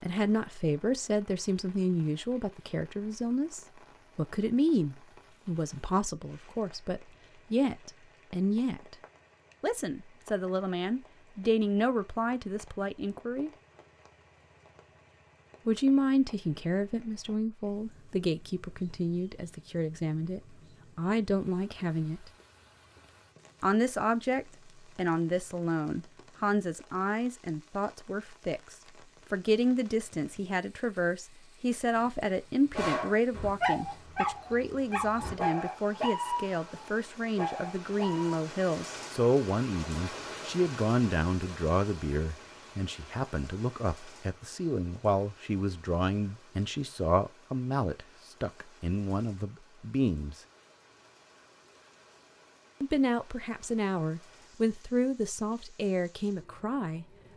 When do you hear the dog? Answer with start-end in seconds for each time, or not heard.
32.8-38.5.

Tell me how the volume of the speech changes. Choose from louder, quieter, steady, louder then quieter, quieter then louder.
steady.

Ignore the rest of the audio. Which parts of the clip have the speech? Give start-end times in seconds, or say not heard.
0.0-8.9, 9.6-13.5, 15.7-22.3, 23.6-50.4, 52.8-57.0.